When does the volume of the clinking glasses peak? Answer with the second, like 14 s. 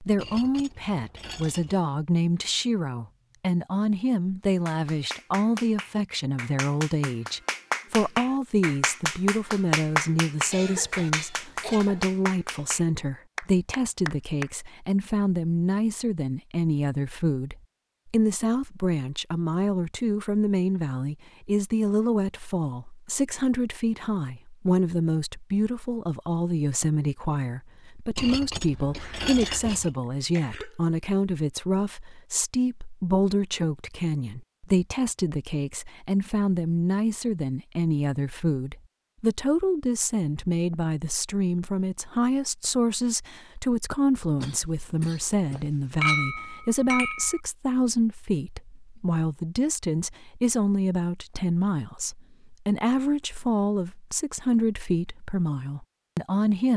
46 s.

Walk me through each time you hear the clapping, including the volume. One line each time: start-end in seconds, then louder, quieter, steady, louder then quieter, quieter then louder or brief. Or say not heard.
4.7-14.5 louder then quieter.